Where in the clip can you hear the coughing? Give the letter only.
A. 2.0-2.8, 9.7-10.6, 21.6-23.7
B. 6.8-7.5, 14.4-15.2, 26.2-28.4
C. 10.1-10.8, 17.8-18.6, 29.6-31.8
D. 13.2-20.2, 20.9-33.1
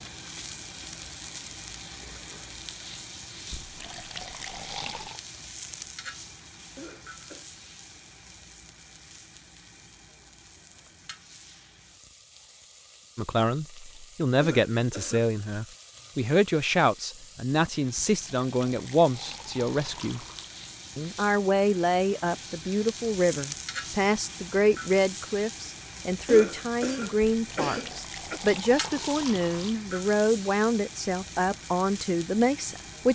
B.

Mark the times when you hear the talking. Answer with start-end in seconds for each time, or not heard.
13.2-20.2, 20.9-33.1.